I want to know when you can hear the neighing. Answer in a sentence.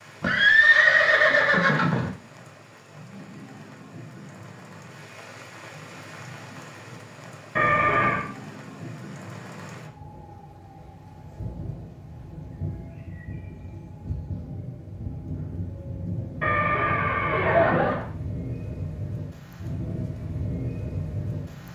The neighing can be heard from 0.2 to 2.1 s, from 7.5 to 8.2 s and from 16.4 to 18.1 s.